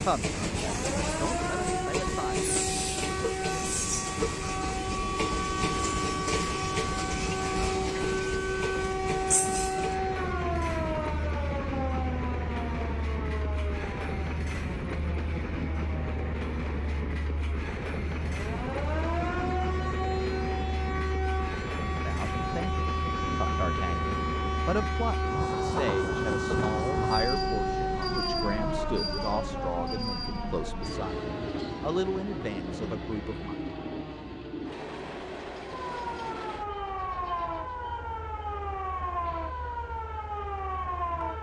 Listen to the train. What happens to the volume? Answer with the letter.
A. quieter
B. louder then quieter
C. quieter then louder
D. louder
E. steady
A.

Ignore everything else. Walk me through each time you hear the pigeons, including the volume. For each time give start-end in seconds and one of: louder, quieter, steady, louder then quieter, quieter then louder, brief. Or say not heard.
not heard.